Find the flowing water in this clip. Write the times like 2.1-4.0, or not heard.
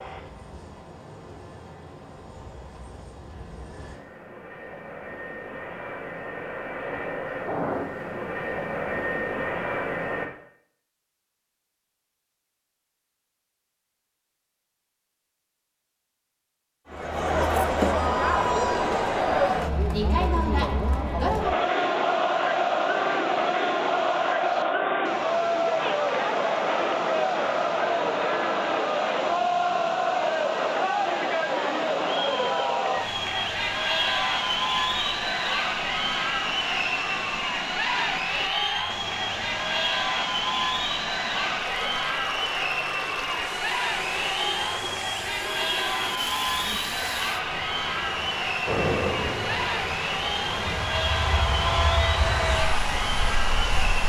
21.3-54.0.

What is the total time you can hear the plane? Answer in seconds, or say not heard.
16 s.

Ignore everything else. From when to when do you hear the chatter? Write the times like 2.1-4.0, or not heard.
16.9-54.0.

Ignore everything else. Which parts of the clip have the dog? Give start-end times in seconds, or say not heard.
not heard.